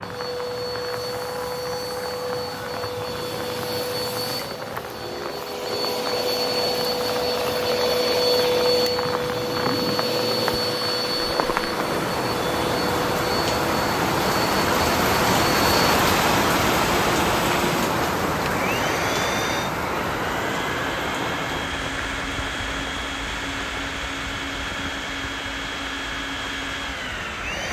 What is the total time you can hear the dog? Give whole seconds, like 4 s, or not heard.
not heard.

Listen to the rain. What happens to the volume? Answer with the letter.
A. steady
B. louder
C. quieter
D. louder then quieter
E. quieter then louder
D.